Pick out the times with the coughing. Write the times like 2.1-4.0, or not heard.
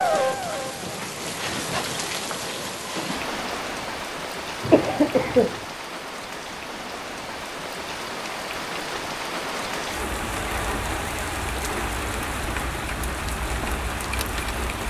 4.6-5.6.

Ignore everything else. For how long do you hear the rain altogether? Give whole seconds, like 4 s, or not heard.
15 s.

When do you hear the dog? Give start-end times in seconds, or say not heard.
not heard.